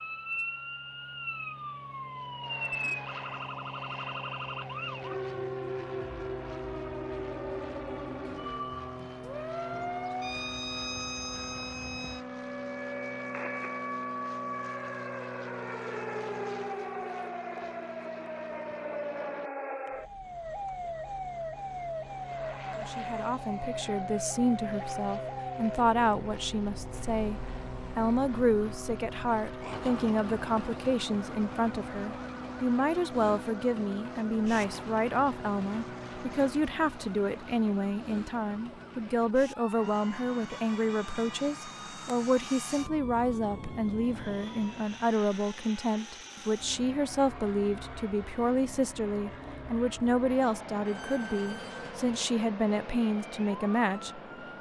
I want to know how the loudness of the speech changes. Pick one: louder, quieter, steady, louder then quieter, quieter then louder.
steady.